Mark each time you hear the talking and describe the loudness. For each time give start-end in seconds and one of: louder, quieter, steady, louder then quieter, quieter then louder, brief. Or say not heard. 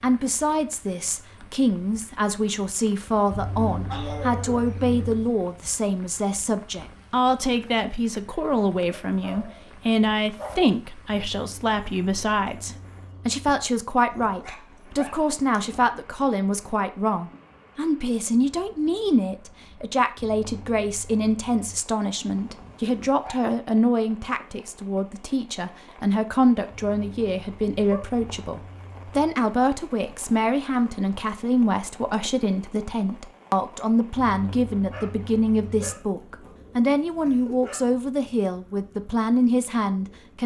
0.0-40.4 steady.